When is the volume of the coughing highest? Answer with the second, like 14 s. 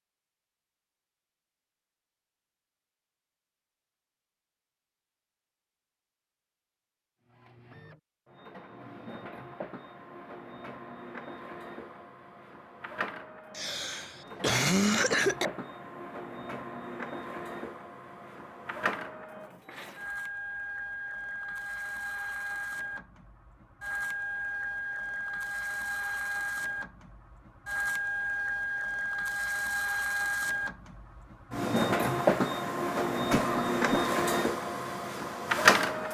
15 s.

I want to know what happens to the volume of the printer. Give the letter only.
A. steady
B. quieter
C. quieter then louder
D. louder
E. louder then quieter
D.